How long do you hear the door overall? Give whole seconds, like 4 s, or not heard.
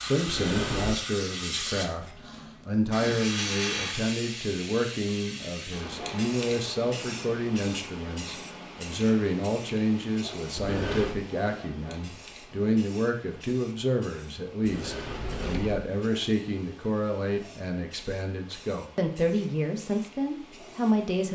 3 s.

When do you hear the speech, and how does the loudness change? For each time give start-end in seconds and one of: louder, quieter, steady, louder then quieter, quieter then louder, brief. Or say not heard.
0.0-21.3 steady.